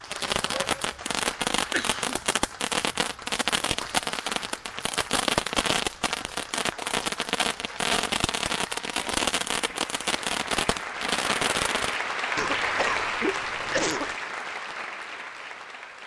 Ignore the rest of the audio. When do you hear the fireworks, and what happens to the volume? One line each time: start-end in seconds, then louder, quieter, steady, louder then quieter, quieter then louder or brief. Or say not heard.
0.1-12.0 steady.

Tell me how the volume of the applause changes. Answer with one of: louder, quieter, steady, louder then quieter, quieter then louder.
louder.